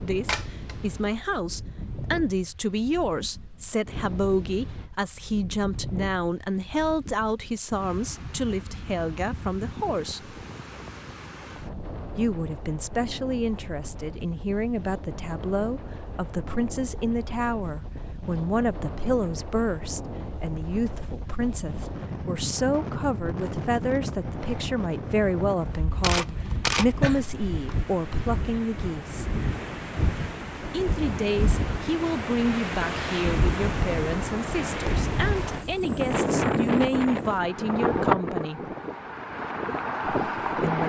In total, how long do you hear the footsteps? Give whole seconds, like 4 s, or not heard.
not heard.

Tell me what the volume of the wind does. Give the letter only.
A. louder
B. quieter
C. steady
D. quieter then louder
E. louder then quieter
A.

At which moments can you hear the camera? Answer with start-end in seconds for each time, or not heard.
0.2-1.4, 26.0-27.2.